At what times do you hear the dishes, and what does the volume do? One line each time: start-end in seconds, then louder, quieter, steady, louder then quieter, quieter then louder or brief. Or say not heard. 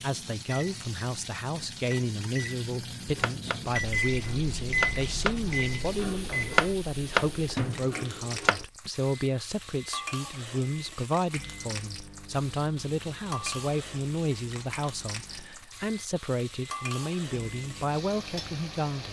not heard.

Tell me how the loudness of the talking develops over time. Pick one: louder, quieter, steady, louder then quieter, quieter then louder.
steady.